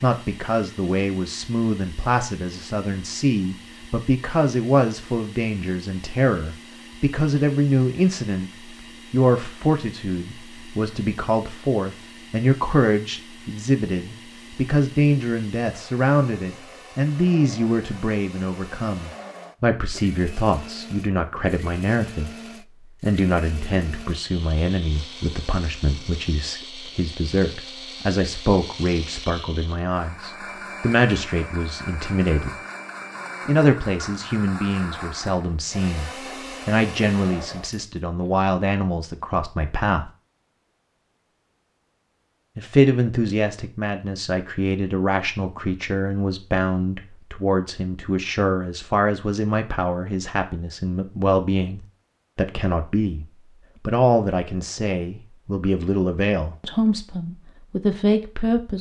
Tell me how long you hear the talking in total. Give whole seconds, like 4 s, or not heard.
55 s.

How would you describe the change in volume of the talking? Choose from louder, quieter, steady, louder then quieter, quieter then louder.
steady.